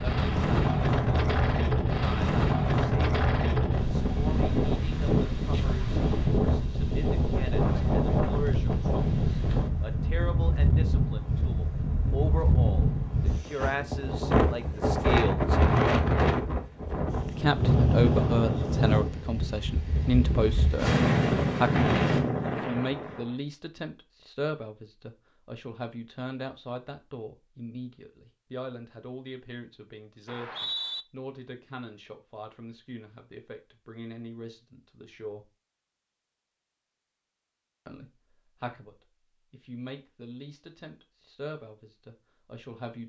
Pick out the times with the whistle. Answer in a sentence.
You can hear the whistle from 30.2 to 31.1 s.